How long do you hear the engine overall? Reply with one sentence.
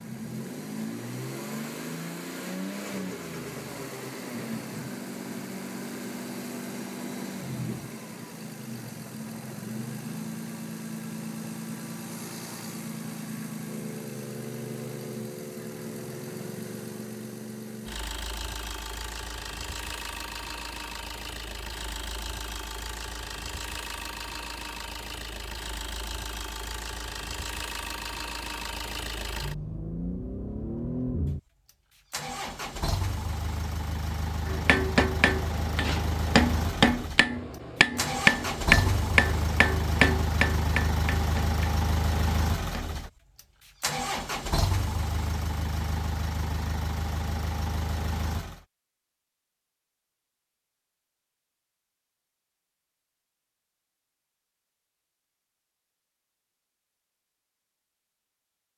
The engine can be heard for 49 seconds in total.